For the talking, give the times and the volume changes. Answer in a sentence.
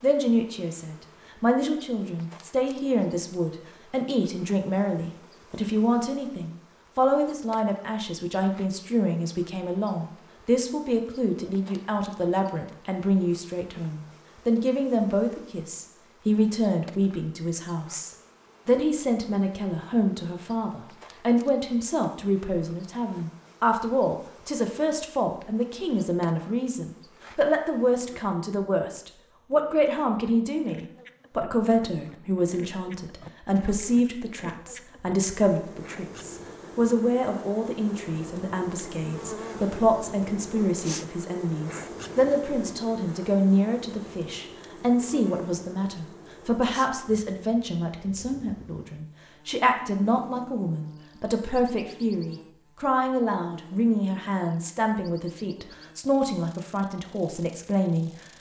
You can hear the talking from 0.0 to 58.1 s, at a steady volume.